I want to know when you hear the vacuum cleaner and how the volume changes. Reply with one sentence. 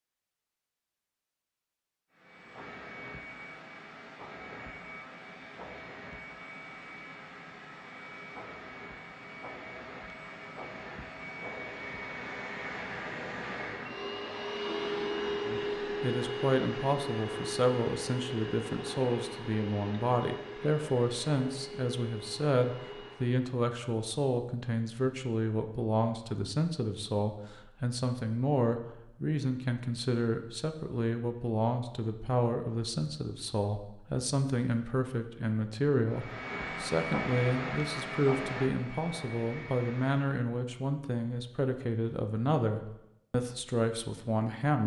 You can hear the vacuum cleaner from 2.1 to 23.5 s, getting louder then quieter; and from 36.0 to 40.4 s, getting quieter.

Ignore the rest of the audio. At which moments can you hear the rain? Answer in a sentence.
The rain can't be heard in this clip.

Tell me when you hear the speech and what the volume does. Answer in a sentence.
The speech can be heard from 15.4 to 44.8 s, at a steady volume.